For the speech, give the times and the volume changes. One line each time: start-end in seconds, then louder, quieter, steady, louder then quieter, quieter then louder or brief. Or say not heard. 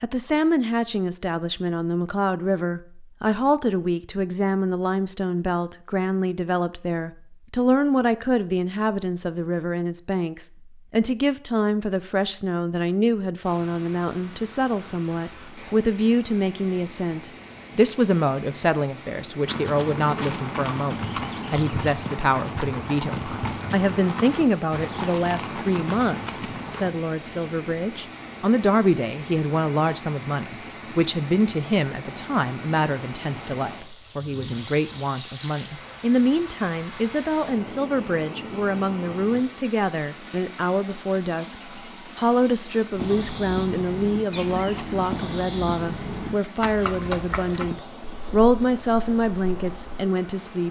0.0-50.6 steady.